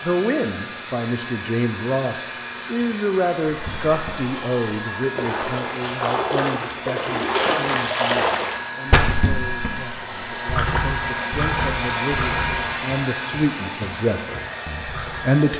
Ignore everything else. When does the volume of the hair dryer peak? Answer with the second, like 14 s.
12 s.